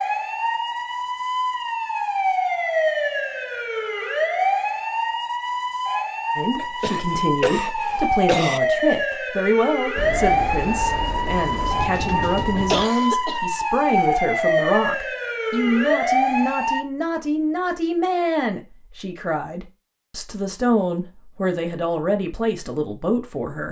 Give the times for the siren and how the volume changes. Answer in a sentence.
The siren can be heard from 0.0 to 16.8 s, at a steady volume.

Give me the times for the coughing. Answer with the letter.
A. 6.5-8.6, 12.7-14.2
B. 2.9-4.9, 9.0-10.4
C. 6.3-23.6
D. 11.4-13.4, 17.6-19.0
A.